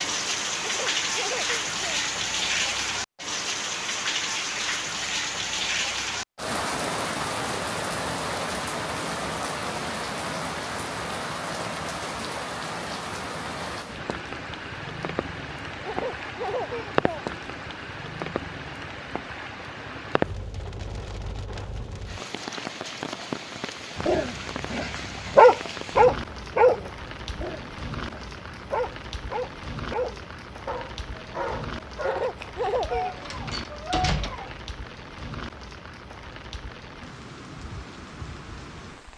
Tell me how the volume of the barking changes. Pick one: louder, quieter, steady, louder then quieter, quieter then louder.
quieter.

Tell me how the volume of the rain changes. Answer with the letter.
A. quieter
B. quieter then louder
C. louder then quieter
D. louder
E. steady
A.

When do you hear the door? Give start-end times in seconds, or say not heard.
33.1-34.6.